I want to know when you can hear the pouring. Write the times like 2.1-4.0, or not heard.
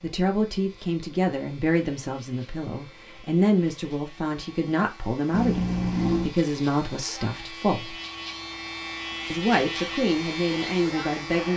5.3-6.3.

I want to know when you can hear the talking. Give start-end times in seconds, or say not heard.
0.0-8.0, 9.3-11.5.